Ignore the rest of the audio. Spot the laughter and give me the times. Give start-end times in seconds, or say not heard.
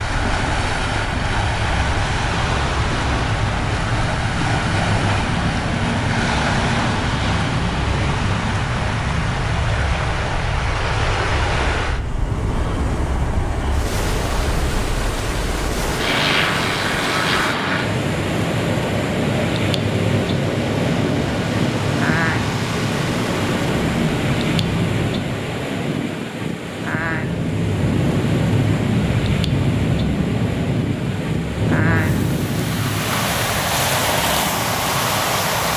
not heard.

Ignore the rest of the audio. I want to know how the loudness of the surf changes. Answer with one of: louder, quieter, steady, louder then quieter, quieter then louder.
steady.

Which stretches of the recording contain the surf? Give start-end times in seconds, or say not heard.
0.0-35.7.